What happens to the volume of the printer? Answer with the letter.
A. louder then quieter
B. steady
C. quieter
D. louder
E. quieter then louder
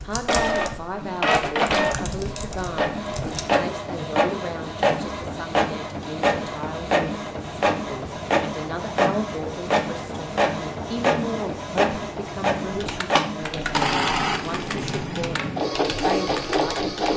B.